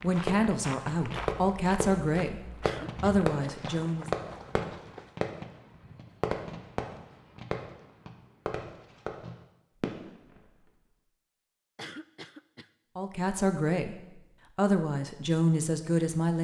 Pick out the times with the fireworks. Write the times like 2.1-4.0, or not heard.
0.0-10.6.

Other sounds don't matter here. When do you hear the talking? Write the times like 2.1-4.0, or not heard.
0.0-4.0, 12.9-16.3.